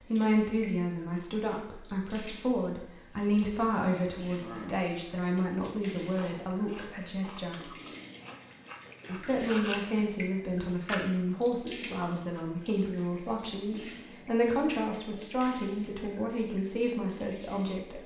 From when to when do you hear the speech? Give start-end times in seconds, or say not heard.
0.0-7.7, 9.1-18.0.